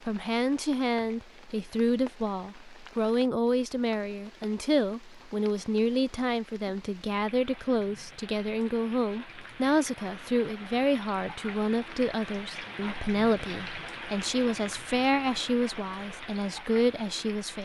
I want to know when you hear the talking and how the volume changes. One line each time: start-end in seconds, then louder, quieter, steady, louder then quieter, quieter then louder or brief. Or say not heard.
0.1-17.6 steady.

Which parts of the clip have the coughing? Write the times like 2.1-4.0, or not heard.
not heard.